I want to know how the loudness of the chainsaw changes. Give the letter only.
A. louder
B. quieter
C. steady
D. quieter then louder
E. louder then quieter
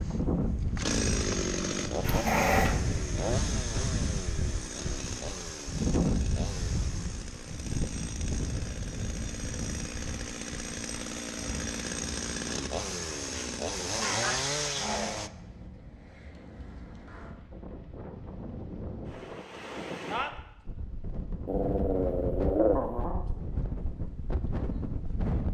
D.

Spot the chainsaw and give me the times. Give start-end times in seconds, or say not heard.
0.0-15.3.